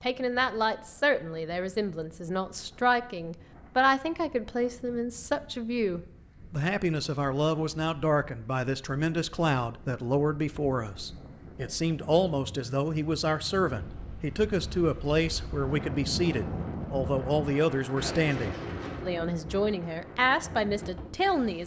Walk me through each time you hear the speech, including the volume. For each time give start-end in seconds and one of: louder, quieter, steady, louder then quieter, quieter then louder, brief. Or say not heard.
0.0-21.6 steady.